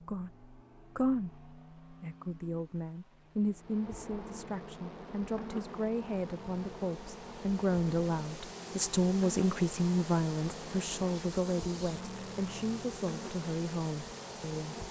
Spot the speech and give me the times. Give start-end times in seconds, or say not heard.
0.0-14.8.